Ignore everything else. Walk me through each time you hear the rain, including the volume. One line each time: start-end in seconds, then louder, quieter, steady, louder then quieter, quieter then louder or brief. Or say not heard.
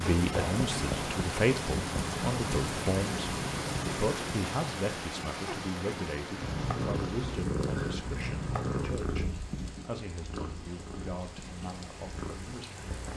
0.0-13.1 quieter.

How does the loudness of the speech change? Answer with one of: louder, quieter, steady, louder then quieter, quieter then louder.
quieter.